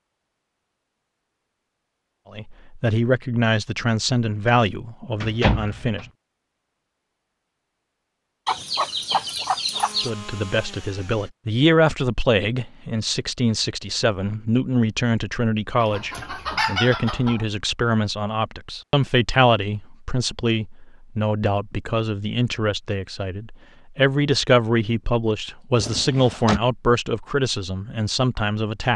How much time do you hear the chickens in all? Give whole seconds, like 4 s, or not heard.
3 s.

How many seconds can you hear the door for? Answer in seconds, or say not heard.
2 s.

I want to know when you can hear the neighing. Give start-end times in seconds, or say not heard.
not heard.